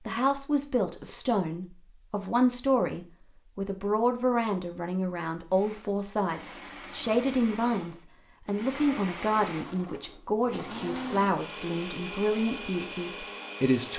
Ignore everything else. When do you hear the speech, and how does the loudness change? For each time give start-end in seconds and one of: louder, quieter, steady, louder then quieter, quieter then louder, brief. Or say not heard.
0.1-13.9 steady.